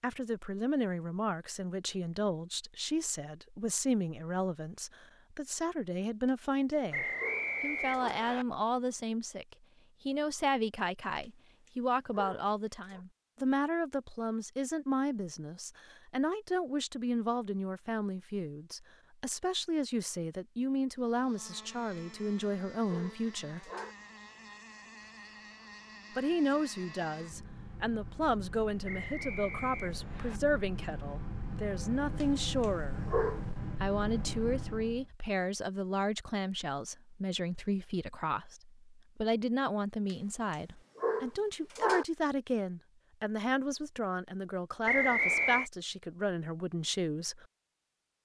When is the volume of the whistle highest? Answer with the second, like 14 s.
45 s.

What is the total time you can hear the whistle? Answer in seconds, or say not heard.
4 s.